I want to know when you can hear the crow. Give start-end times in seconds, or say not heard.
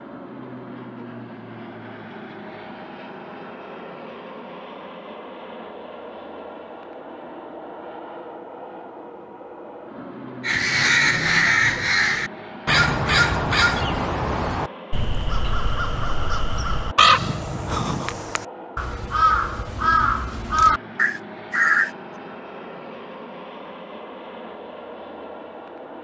10.4-21.9.